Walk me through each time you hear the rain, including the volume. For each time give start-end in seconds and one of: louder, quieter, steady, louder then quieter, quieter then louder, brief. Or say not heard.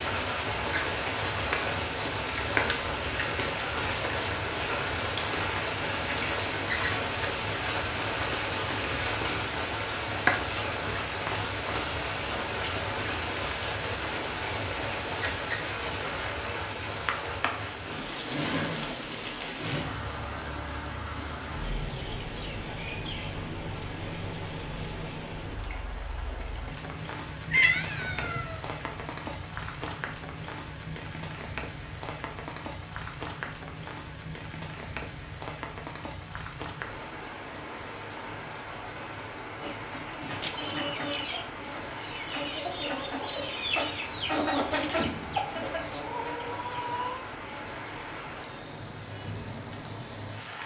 0.0-50.6 quieter.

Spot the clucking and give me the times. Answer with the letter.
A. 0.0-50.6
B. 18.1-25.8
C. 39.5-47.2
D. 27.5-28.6
C.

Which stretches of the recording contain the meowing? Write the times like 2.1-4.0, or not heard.
27.5-28.6.